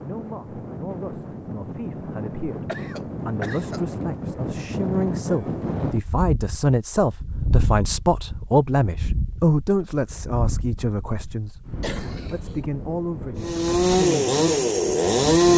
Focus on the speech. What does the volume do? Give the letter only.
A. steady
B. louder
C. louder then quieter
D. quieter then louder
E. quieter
C.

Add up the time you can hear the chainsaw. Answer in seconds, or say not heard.
2 s.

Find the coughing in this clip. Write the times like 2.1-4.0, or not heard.
2.6-4.1, 11.8-12.6.